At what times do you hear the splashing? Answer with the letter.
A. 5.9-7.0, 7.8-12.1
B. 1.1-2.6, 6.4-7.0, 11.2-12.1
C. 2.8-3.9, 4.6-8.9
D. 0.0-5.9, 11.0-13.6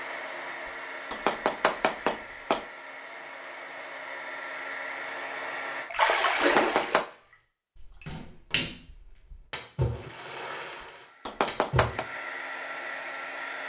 A.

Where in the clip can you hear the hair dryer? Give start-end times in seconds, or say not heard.
0.0-5.9, 11.0-13.6.